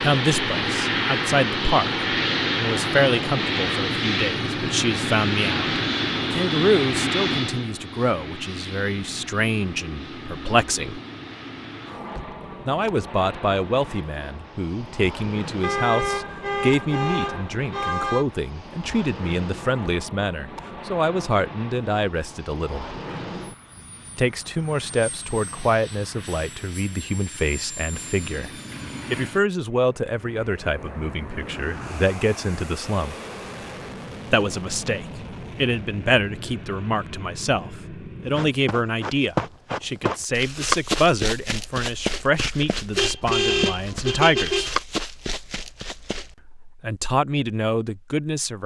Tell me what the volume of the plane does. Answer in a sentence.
The volume of the plane goes down.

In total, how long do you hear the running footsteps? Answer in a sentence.
The running footsteps can be heard for 8 seconds in total.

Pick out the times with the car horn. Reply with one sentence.
You can hear the car horn from 15.6 to 18.2 s and from 43.0 to 44.8 s.